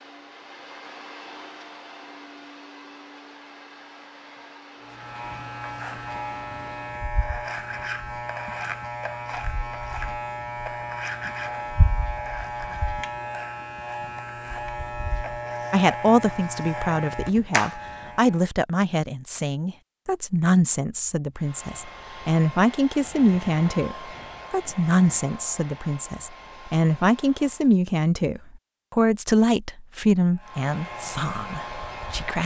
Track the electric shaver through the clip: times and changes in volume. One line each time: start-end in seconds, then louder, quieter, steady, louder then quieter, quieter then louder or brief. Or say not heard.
4.8-18.4 steady
30.4-32.4 brief.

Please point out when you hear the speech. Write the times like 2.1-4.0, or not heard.
15.7-32.4.